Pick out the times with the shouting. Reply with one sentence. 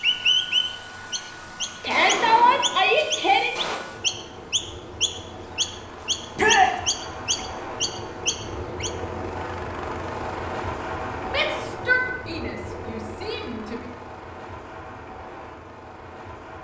You can hear the shouting from 1.8 to 3.5 s, from 6.3 to 6.8 s and from 11.2 to 13.9 s.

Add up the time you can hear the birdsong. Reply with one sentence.
You can hear the birdsong for 9 seconds altogether.